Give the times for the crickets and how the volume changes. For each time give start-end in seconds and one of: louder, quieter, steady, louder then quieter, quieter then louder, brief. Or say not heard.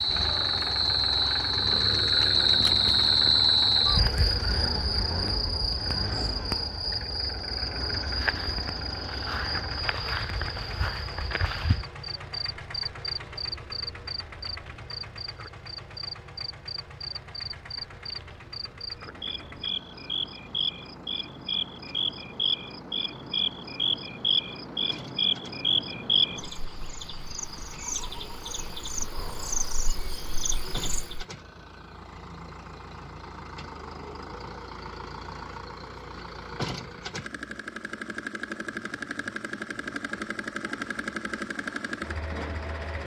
0.0-31.2 quieter then louder.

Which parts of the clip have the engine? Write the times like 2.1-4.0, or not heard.
0.0-43.0.